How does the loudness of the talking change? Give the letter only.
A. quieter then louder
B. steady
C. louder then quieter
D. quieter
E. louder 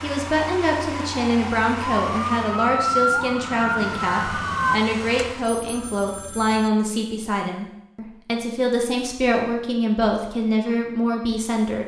B.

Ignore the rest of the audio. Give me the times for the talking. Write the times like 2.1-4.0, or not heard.
0.0-11.8.